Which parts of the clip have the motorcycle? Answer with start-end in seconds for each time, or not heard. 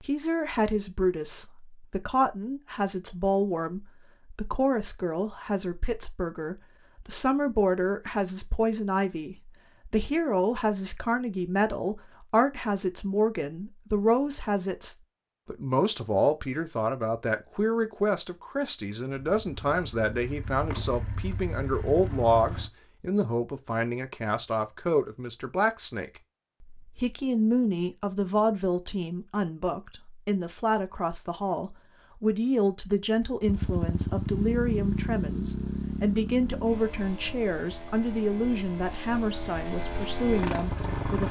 19.1-22.7, 33.4-41.2.